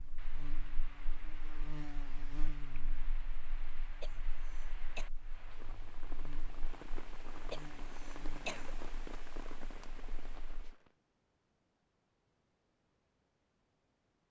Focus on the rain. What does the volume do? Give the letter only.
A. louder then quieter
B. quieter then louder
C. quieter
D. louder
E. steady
D.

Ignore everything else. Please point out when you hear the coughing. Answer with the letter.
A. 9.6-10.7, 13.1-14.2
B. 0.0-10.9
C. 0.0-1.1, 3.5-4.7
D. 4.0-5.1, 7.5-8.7
D.